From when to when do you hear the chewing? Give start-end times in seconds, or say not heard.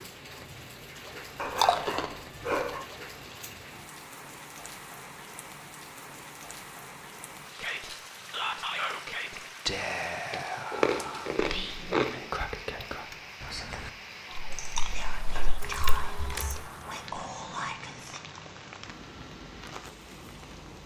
1.6-3.4, 10.3-12.2, 14.2-16.6.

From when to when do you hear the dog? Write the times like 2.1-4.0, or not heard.
1.4-2.9.